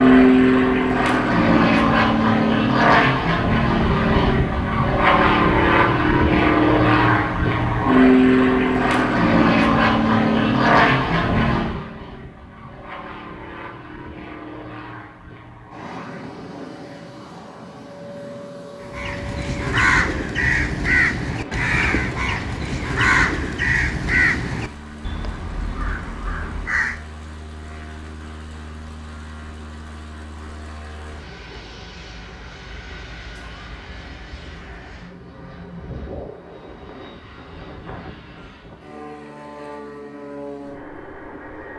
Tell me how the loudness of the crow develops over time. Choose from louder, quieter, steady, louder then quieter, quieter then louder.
quieter.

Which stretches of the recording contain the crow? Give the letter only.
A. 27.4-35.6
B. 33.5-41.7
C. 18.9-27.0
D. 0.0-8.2
C.